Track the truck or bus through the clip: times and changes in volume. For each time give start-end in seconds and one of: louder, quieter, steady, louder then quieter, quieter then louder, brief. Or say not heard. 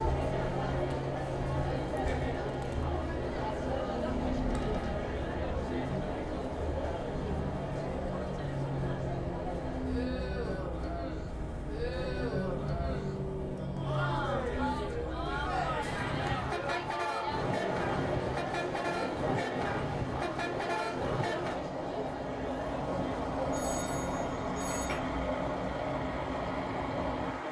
0.0-27.4 steady.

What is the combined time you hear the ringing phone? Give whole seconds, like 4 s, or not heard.
2 s.